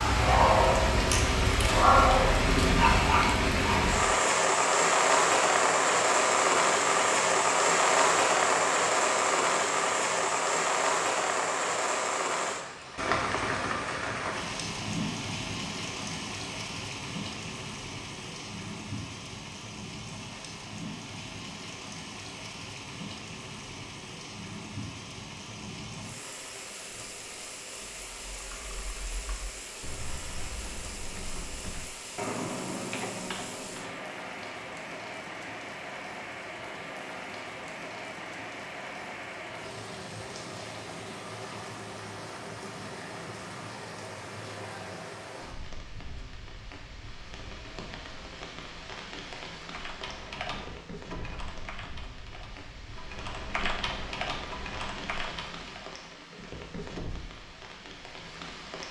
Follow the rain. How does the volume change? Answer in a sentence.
The volume of the rain goes down.